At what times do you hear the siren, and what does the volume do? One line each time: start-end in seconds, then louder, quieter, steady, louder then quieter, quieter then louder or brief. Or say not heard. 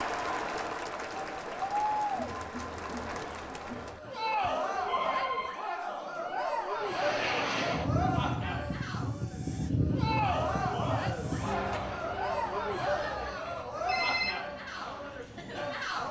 not heard.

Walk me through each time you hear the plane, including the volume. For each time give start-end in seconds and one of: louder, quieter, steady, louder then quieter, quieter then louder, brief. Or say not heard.
6.8-16.0 quieter.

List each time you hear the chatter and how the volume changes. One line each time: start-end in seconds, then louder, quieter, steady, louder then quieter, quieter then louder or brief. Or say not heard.
0.0-16.0 steady.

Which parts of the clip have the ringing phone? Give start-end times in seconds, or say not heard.
3.7-5.5, 12.8-14.3.